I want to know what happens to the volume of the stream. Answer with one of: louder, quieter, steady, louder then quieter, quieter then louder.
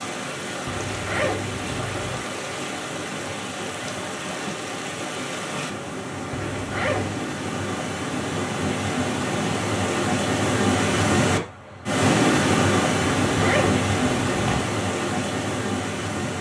louder.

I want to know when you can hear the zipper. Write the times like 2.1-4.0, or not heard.
0.7-2.2, 6.3-7.2, 13.2-14.8.